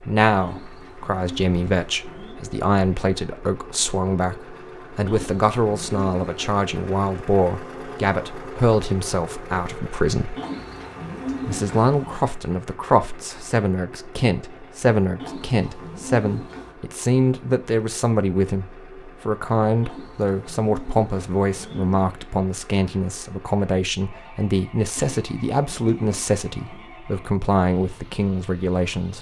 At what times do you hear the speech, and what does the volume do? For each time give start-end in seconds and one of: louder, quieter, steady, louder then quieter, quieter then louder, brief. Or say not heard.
0.0-10.3 steady
11.4-29.1 steady.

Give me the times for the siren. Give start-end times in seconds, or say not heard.
not heard.